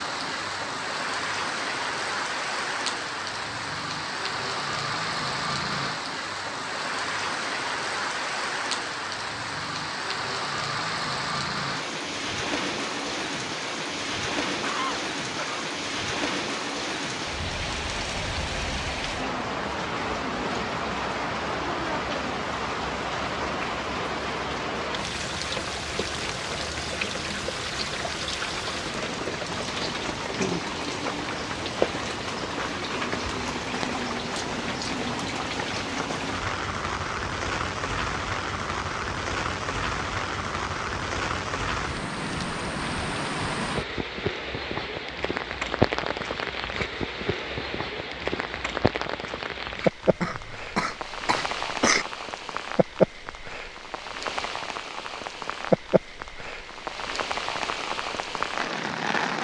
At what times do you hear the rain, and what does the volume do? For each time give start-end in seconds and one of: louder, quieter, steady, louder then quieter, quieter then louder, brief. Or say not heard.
0.0-59.3 steady.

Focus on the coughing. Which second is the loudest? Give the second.
52 s.